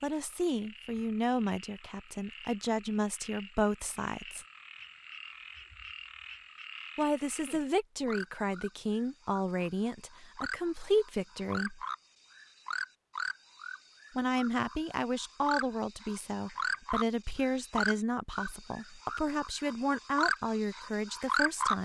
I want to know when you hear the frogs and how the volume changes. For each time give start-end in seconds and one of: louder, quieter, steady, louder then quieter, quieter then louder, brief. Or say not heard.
0.0-21.8 louder.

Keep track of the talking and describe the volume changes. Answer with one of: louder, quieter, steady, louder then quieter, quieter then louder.
steady.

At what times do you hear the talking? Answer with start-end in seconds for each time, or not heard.
0.0-4.5, 7.0-11.8, 14.2-21.8.